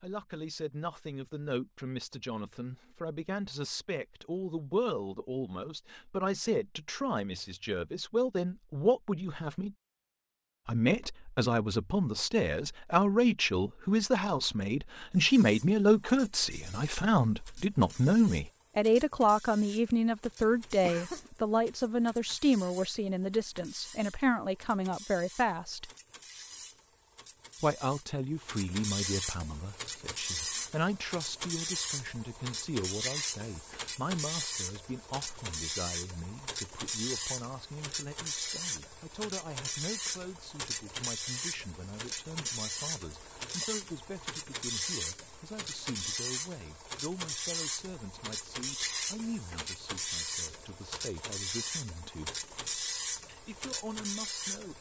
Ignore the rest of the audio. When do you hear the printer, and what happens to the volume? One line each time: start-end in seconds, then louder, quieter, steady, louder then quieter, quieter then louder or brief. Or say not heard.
15.2-54.7 louder.